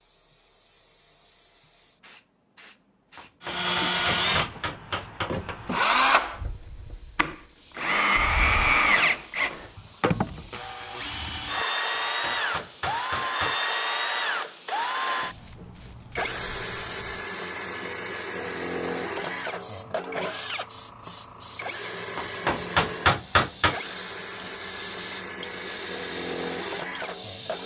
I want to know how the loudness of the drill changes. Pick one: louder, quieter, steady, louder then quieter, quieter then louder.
quieter.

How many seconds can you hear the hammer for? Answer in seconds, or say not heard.
6 s.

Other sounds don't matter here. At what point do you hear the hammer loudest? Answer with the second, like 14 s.
23 s.